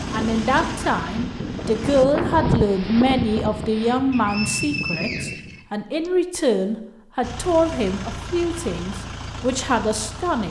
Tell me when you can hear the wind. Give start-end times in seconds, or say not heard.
0.0-5.6.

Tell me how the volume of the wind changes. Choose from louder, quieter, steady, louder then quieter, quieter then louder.
louder then quieter.